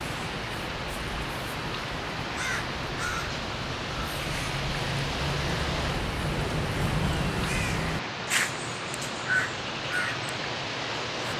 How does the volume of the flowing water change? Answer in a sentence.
The loudness of the flowing water stays about the same.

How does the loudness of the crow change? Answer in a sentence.
The loudness of the crow goes up.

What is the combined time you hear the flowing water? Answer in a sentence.
The flowing water can be heard for 11 seconds in total.